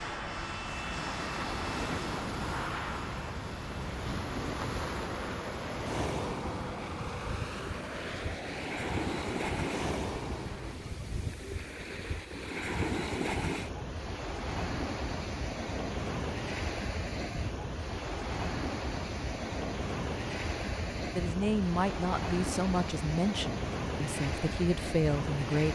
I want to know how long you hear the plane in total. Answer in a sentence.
You can hear the plane for 11 seconds altogether.